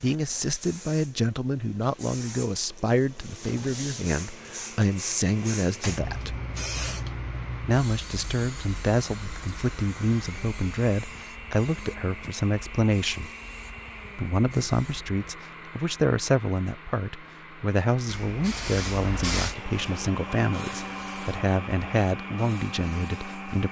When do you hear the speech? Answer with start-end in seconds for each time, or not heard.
0.0-6.3, 7.6-13.3, 14.2-23.6.